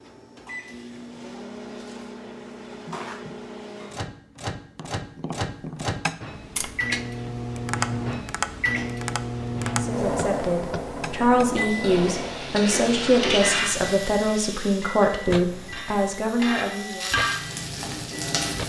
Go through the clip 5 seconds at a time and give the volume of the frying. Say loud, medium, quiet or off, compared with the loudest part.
off, off, loud, loud.